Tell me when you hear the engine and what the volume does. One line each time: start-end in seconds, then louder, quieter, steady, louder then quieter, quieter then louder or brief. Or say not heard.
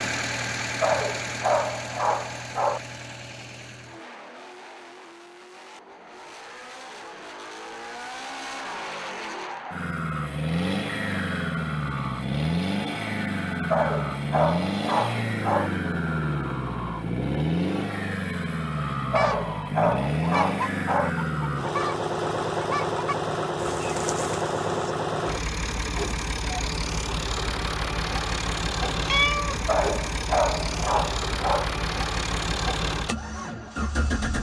0.0-34.3 louder.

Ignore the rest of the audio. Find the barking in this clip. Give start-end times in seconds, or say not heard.
0.8-2.8, 13.7-15.7, 19.1-21.1, 29.6-31.6.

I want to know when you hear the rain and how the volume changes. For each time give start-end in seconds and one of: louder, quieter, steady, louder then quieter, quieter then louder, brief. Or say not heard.
not heard.